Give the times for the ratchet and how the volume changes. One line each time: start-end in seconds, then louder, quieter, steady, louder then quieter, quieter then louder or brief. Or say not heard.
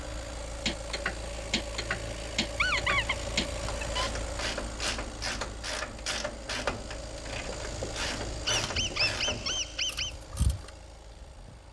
0.7-10.7 steady.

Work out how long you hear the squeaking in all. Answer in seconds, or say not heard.
3 s.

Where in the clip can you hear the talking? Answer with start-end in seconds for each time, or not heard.
not heard.